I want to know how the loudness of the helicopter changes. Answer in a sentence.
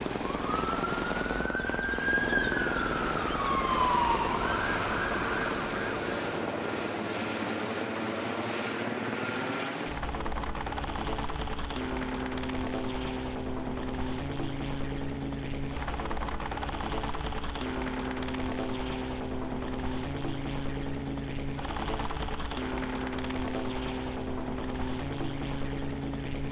The loudness of the helicopter stays about the same.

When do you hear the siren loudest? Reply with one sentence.
The volume of the siren peaks at 4 seconds.